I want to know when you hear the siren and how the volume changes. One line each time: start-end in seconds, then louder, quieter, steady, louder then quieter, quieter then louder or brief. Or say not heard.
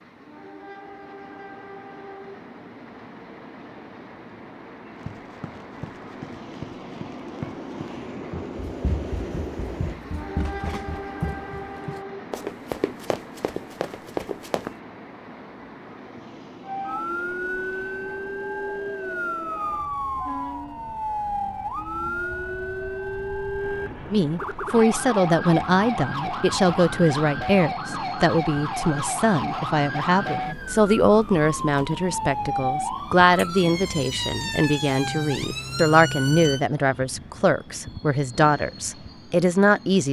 16.6-36.6 steady.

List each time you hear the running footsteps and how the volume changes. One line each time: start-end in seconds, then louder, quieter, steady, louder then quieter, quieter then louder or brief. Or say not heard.
5.0-14.8 louder.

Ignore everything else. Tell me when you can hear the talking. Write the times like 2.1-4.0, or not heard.
24.1-40.0.